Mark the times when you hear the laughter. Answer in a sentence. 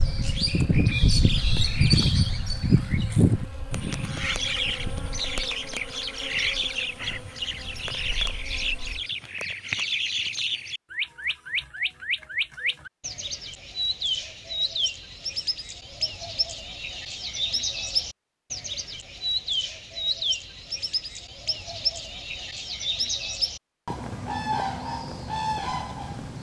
The laughter can't be heard in this clip.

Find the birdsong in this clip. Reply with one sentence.
The birdsong can be heard from 0.0 to 26.3 s.